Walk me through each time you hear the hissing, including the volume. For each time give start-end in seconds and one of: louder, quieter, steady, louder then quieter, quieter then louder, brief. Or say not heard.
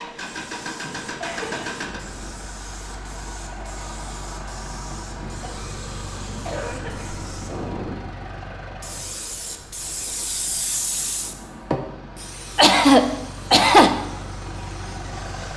0.2-15.5 louder then quieter.